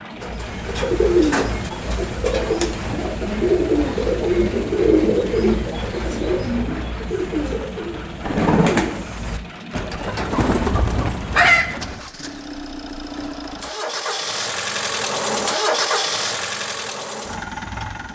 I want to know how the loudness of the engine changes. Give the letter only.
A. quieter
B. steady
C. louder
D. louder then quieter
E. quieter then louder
C.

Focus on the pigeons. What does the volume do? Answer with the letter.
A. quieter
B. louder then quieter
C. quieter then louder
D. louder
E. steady
E.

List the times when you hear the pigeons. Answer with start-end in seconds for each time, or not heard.
0.2-12.0.